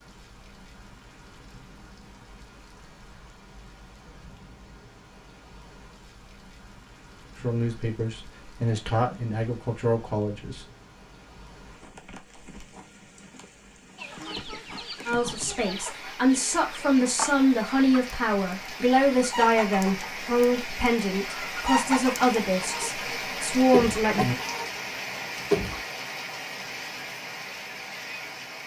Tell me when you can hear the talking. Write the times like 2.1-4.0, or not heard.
7.4-10.6, 15.1-24.4.